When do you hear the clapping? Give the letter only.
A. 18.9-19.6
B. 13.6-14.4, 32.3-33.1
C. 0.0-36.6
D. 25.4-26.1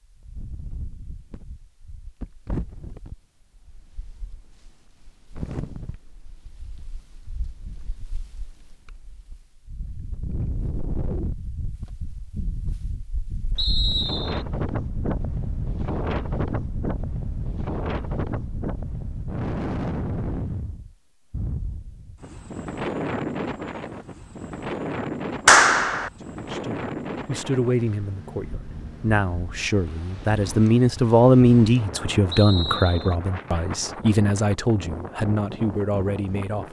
D.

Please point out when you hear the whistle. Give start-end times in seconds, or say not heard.
13.6-14.4, 32.3-33.1.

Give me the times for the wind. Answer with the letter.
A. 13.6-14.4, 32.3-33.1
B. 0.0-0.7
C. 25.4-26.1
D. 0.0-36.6
D.